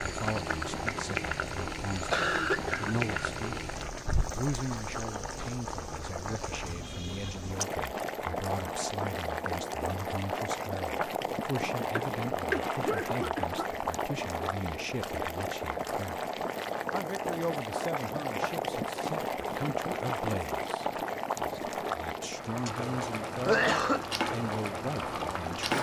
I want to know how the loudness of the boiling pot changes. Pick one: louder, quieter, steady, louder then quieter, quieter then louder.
steady.